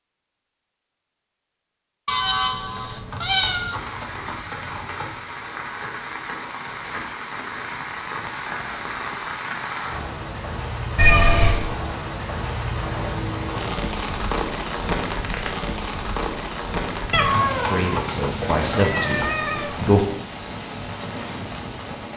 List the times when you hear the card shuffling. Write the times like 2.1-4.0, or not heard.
3.1-5.3, 17.3-19.2.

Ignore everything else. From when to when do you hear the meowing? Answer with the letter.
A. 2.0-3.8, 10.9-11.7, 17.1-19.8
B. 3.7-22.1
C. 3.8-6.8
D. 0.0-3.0
A.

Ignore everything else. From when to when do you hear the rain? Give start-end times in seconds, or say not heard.
3.7-22.1.